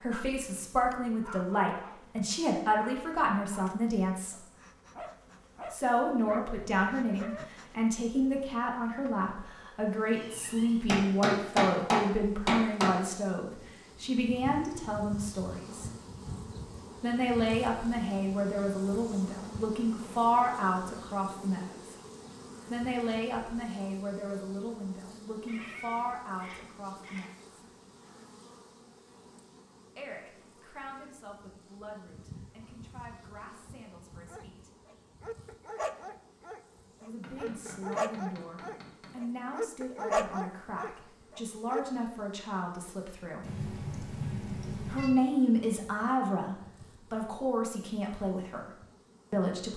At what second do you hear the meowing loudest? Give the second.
44 s.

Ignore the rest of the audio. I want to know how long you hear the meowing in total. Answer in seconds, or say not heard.
4 s.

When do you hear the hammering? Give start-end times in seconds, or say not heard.
10.8-12.9, 37.2-39.1.